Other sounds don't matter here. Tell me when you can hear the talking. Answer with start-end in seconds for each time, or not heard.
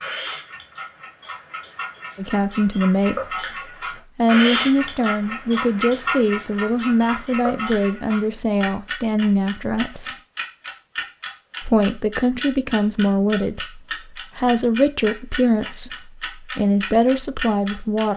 2.1-3.2, 4.2-10.2, 11.6-18.1.